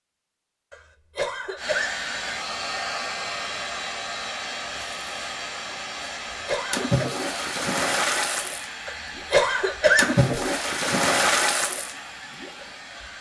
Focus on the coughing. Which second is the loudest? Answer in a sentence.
The loudest moment of the coughing is at 10 seconds.